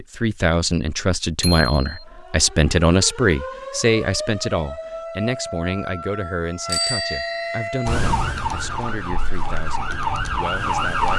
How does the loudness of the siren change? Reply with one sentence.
The loudness of the siren goes up.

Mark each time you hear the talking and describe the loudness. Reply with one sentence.
The talking can be heard from 0.0 to 11.1 s, getting quieter.